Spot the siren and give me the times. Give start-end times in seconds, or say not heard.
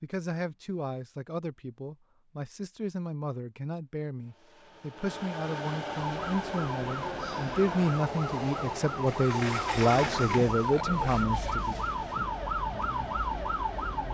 6.0-14.0.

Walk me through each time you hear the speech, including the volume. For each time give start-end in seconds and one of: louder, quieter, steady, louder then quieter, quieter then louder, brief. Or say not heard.
0.0-11.8 louder.